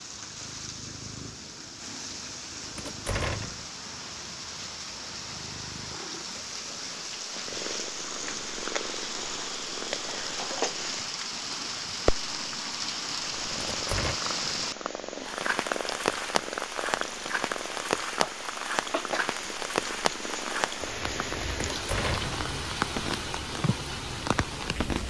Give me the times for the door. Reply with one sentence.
You can hear the door from 2.8 to 3.6 s, from 13.6 to 14.2 s and from 21.7 to 22.4 s.